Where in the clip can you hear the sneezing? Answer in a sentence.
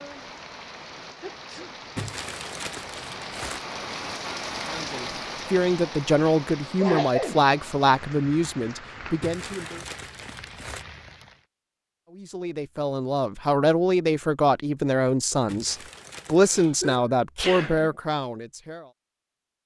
The sneezing can be heard from 1.2 to 1.8 s, from 6.8 to 7.4 s and from 16.4 to 17.9 s.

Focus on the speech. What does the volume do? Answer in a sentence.
The loudness of the speech stays about the same.